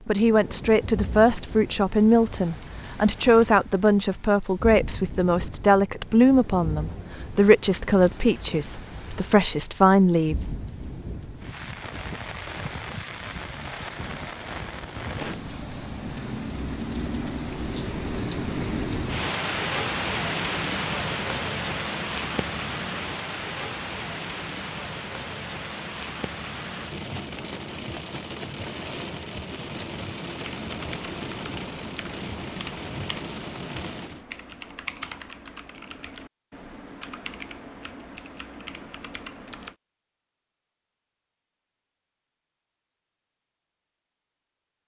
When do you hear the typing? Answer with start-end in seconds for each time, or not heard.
30.4-39.8.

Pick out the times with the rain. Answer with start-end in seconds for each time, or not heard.
0.0-34.2.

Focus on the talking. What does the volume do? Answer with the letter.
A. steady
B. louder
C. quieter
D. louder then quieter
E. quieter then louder
A.